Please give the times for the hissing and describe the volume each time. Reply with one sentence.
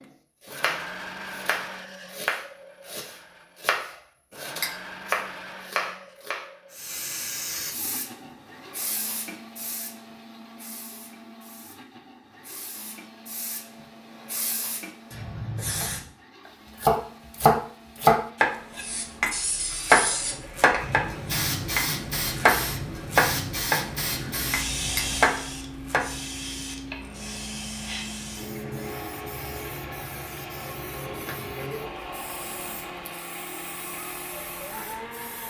You can hear the hissing from 6.7 to 16.1 s, getting quieter then louder; and from 18.8 to 35.4 s, getting quieter.